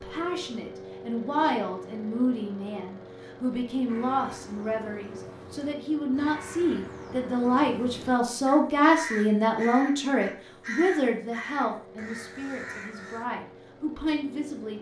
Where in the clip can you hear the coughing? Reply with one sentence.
You can't hear the coughing here.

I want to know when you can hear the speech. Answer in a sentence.
You can hear the speech from 0.0 to 14.7 s.